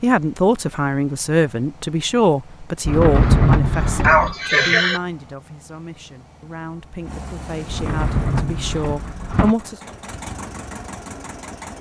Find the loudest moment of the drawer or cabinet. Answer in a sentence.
The loudest moment of the drawer or cabinet is at 3 seconds.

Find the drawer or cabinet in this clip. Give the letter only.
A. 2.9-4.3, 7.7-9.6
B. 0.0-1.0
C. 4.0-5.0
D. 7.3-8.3
A.